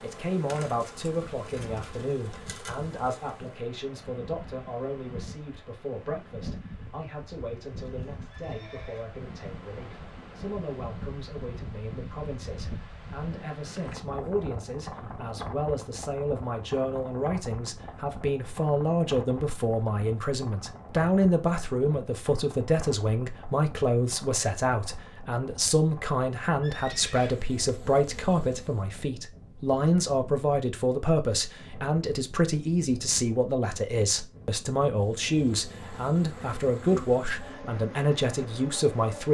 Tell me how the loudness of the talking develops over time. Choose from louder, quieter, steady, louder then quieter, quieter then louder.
louder.